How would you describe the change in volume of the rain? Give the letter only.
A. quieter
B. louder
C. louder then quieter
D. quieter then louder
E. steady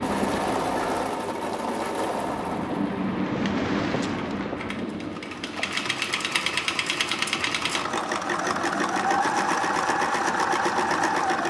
C.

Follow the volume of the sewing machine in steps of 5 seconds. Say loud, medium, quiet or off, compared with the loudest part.
medium, loud, loud.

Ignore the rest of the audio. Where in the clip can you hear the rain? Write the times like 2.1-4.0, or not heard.
0.0-11.4.